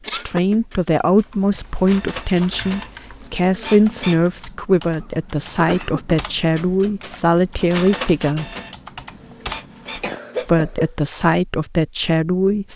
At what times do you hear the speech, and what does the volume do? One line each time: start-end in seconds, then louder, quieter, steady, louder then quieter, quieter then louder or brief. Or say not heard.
0.1-8.5 steady
10.4-12.7 brief.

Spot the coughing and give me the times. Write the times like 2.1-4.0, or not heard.
0.1-0.6, 5.0-6.2, 9.2-10.9.